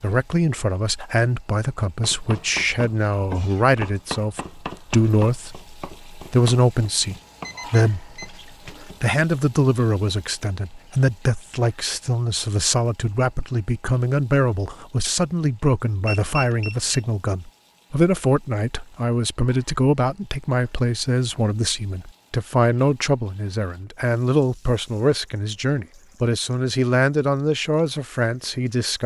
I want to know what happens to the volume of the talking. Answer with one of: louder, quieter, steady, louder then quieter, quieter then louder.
steady.